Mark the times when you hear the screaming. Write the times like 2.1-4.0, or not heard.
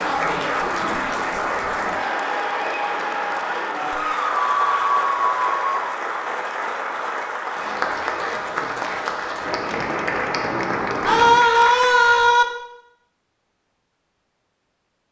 4.0-5.9, 11.0-12.4.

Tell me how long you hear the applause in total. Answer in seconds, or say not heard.
12 s.